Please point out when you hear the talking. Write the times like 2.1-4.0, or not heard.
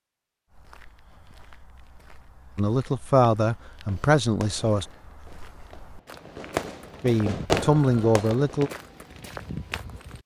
2.5-4.8, 7.0-8.7.